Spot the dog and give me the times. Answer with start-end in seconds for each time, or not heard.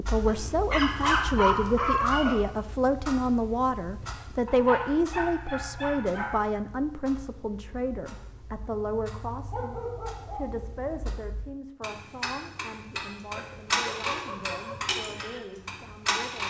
0.2-2.4, 4.5-6.3, 9.5-10.4, 13.3-14.8.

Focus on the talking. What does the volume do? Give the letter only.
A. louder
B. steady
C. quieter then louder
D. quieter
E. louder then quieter
D.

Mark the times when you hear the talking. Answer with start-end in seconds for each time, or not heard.
0.0-16.4.